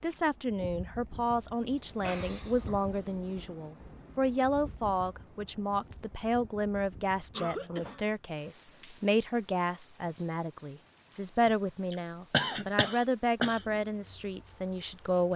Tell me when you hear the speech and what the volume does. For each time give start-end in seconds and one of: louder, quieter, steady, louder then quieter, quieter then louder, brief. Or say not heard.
0.0-15.3 steady.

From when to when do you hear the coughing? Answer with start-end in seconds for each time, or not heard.
1.9-3.4, 7.3-8.1, 11.4-13.6.